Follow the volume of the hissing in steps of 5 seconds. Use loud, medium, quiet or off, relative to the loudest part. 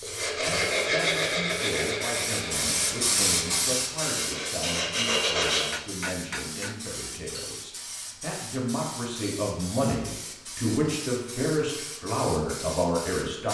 loud, medium, medium.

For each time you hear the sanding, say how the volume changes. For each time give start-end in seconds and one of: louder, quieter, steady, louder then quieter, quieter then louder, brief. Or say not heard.
0.0-5.7 quieter then louder.